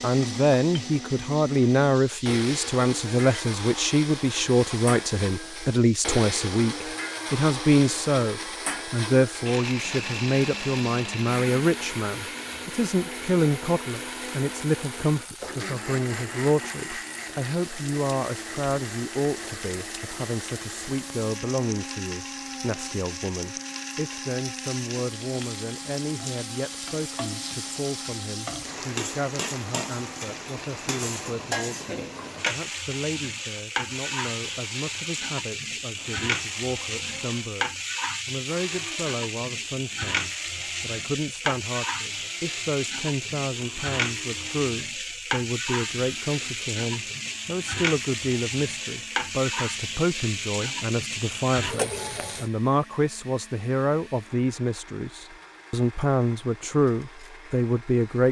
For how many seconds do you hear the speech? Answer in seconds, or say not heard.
58 s.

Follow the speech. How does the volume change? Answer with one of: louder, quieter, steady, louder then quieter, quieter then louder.
quieter then louder.